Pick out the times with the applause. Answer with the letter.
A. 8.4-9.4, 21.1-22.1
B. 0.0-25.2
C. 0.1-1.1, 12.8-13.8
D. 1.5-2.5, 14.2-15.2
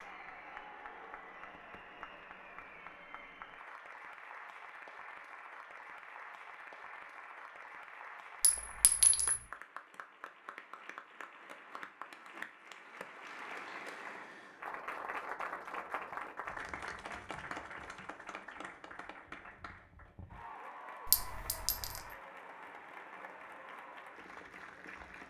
B.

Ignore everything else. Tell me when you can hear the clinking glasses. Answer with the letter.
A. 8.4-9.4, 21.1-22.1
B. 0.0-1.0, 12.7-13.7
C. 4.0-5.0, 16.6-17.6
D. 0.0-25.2
A.